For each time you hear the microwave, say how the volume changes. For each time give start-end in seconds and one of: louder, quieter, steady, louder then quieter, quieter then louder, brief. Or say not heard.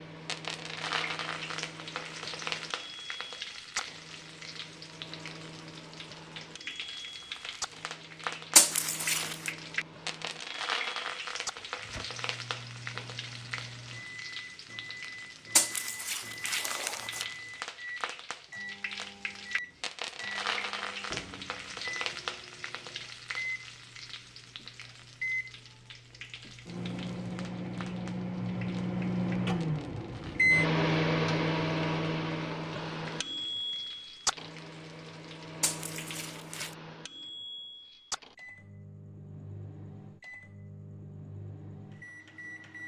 0.0-42.8 louder then quieter.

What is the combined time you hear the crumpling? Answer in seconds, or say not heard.
4 s.